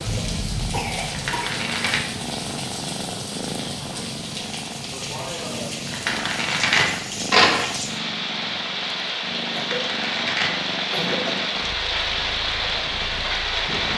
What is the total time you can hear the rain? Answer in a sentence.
The rain can be heard for 14 seconds in total.